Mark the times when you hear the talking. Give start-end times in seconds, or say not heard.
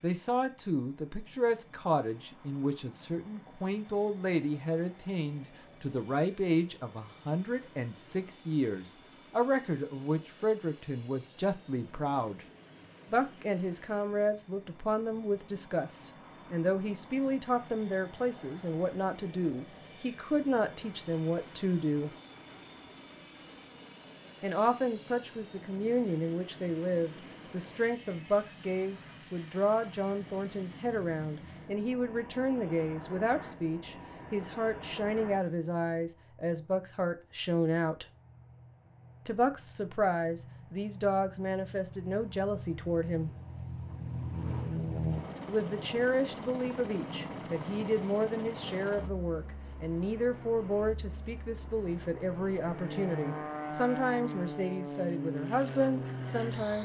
0.0-12.4, 13.1-22.1, 24.4-38.0, 39.2-43.3, 45.5-56.8.